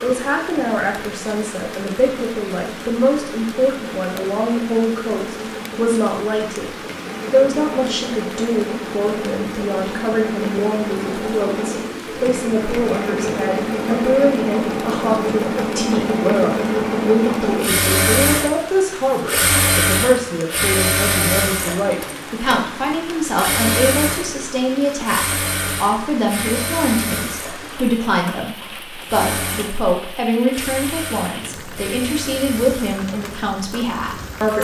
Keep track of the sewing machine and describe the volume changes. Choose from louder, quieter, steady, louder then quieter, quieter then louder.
louder then quieter.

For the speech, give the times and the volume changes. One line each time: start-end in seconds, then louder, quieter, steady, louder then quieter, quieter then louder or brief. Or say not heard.
0.0-34.5 steady.